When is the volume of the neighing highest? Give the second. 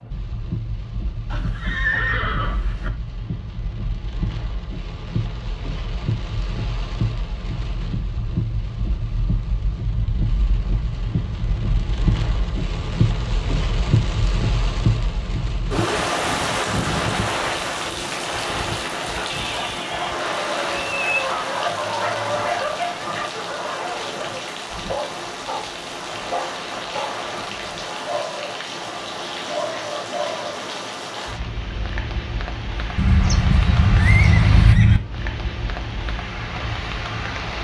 35 s.